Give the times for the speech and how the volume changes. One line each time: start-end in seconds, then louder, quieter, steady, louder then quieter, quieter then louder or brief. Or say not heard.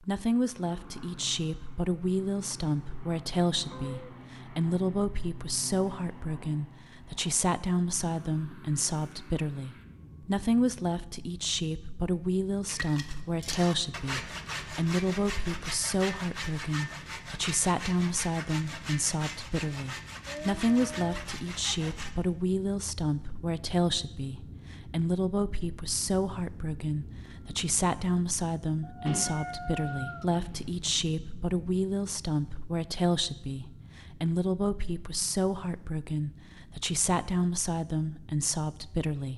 0.0-39.3 steady.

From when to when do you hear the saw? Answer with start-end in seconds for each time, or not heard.
12.7-22.1.